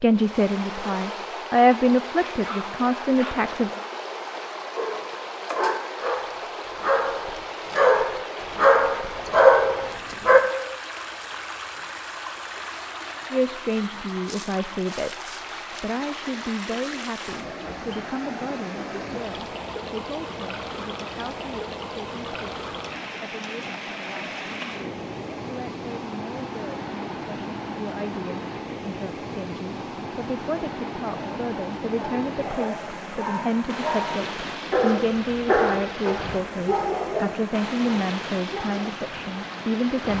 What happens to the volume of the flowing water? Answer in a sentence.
The loudness of the flowing water stays about the same.